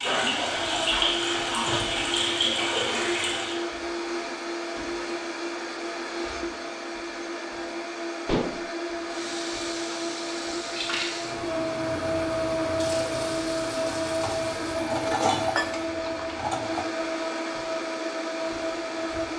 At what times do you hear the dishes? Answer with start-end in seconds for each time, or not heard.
0.6-2.1, 8.2-8.7, 14.2-16.9.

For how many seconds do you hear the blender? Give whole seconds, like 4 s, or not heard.
19 s.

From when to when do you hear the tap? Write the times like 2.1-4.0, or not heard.
0.0-3.6, 9.1-15.9.